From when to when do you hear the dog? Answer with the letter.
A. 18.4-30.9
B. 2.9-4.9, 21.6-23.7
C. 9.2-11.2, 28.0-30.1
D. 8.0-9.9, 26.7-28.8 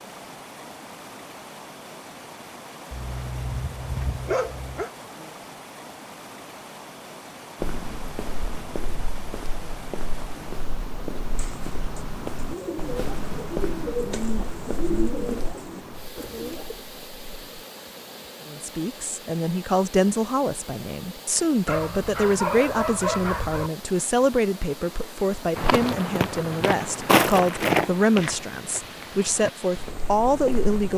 B.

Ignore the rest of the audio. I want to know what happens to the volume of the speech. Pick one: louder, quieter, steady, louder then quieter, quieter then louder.
steady.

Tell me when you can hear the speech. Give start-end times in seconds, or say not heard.
18.4-30.9.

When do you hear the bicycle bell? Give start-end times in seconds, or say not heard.
not heard.